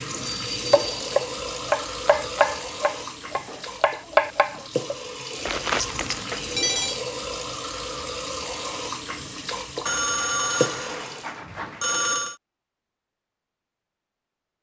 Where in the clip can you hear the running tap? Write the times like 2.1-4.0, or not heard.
0.0-11.4.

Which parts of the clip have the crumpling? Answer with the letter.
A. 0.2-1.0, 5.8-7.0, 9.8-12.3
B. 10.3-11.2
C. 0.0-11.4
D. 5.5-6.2
D.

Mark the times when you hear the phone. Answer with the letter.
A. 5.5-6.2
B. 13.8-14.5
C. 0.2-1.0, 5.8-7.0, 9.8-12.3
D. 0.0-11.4
C.